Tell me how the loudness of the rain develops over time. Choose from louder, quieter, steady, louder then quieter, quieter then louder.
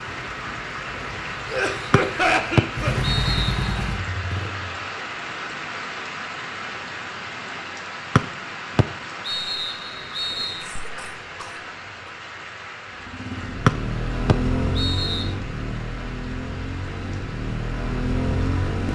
quieter.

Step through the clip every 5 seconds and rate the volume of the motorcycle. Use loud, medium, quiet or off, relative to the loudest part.
loud, off, loud, loud.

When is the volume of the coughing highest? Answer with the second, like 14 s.
2 s.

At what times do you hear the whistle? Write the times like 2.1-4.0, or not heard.
1.9-3.8, 8.2-10.7, 13.7-15.3.